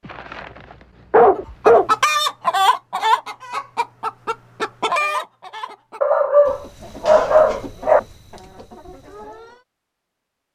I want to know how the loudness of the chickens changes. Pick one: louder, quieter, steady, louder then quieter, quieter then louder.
quieter.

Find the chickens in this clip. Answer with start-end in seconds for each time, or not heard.
1.4-9.6.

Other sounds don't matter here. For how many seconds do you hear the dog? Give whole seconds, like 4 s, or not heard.
3 s.